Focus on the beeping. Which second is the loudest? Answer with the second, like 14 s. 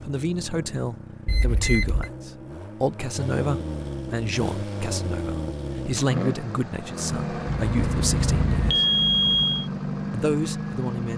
9 s.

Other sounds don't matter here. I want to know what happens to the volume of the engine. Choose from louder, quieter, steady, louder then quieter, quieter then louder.
louder.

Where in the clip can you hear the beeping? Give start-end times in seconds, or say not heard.
1.2-2.1, 7.5-9.7.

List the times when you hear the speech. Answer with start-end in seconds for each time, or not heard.
0.1-8.8, 10.1-11.1.